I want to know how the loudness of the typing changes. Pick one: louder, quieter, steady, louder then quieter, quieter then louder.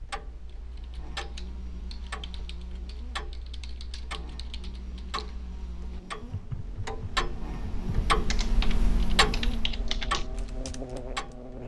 louder.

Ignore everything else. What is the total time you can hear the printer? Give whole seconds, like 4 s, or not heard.
not heard.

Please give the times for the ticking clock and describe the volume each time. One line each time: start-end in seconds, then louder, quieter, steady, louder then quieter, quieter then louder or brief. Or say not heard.
0.0-11.6 louder.